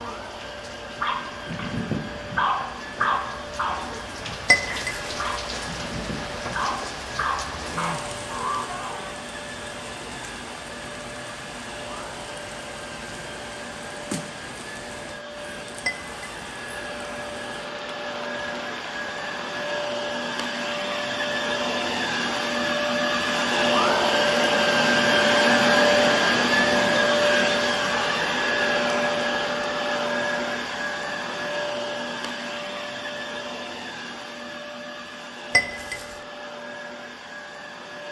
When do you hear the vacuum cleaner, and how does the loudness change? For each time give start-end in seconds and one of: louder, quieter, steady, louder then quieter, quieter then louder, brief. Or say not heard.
0.0-38.0 louder then quieter.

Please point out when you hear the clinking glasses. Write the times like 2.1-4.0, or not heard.
4.5-5.0, 15.8-16.4, 35.5-36.0.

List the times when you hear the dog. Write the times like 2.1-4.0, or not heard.
0.9-9.2.